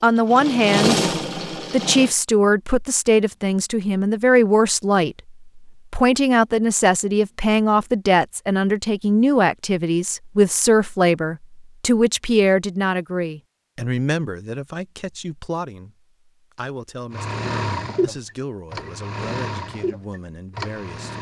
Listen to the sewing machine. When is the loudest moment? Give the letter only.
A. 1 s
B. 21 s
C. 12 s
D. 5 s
A.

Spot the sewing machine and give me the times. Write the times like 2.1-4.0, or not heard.
0.0-2.1, 17.1-21.1.